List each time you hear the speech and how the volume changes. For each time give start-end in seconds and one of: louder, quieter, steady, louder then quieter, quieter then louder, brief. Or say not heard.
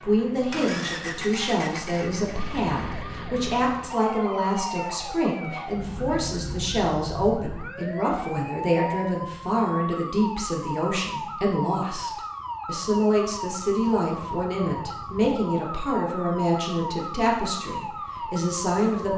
0.0-19.1 steady.